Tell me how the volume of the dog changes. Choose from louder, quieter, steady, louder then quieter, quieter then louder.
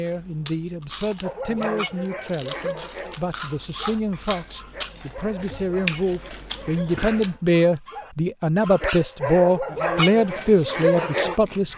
quieter then louder.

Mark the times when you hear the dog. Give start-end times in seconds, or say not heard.
1.2-11.4.